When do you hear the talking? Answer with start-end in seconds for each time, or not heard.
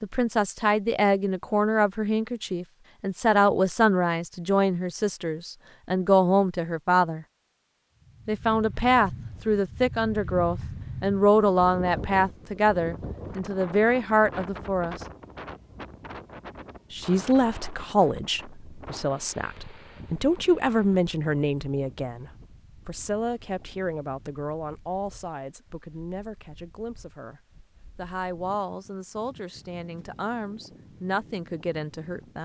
0.0-7.2, 8.2-14.9, 16.9-32.4.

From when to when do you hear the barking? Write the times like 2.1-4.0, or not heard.
not heard.